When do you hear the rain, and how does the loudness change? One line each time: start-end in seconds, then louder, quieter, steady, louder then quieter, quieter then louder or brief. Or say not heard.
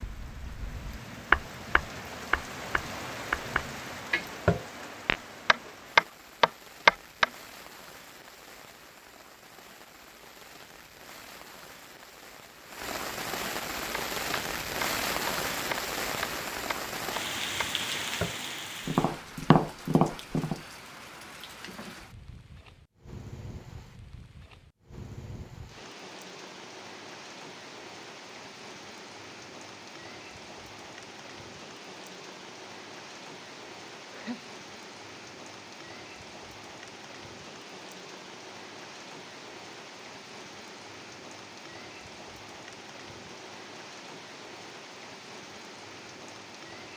0.0-46.9 louder then quieter.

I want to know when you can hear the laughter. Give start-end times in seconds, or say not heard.
34.0-34.5.